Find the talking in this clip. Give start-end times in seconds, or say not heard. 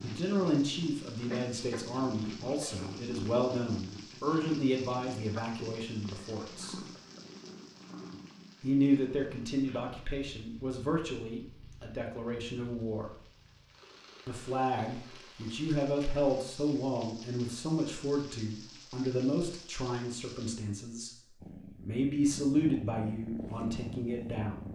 0.0-6.8, 8.6-13.2, 14.2-21.1, 21.8-24.6.